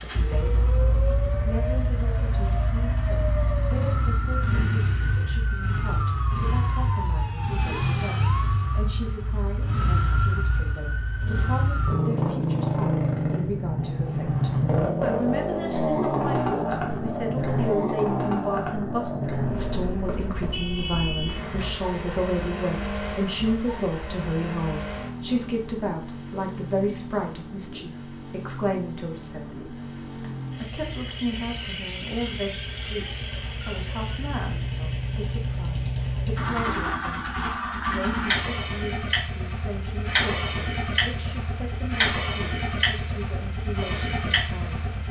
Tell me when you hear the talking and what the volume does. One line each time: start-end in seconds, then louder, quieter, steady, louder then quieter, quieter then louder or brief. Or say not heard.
0.0-44.9 louder then quieter.